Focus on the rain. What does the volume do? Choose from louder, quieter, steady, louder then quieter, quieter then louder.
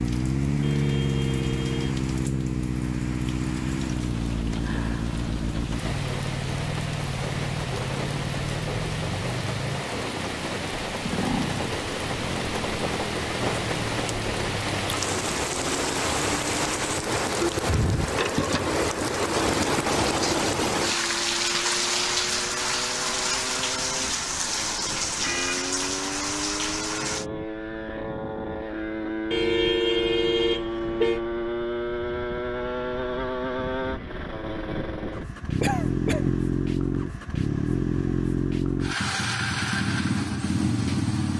louder.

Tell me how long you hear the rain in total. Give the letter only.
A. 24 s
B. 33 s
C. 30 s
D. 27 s
D.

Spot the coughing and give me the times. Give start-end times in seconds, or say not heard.
35.6-36.4.